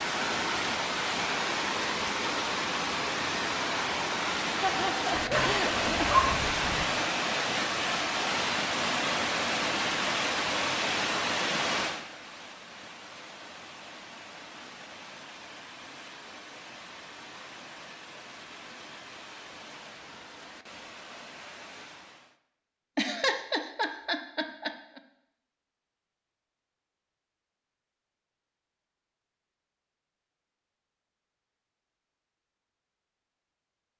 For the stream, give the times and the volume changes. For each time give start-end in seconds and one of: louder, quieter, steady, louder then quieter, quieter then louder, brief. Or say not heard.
0.0-22.4 quieter.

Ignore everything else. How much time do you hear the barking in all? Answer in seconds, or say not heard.
2 s.